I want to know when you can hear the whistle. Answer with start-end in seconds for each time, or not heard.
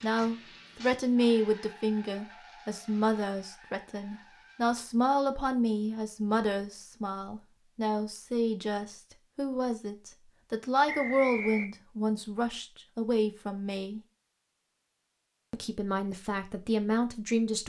10.8-11.7.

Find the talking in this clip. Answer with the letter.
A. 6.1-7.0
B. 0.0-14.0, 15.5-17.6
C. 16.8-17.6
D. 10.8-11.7
B.